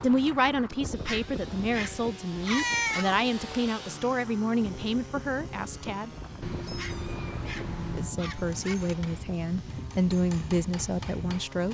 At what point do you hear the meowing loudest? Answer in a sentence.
The volume of the meowing peaks at 3 seconds.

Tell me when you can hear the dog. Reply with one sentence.
You can hear the dog from 1.1 to 3.0 s and from 6.8 to 8.8 s.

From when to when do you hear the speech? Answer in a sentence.
You can hear the speech from 0.0 to 6.1 s and from 8.0 to 11.6 s.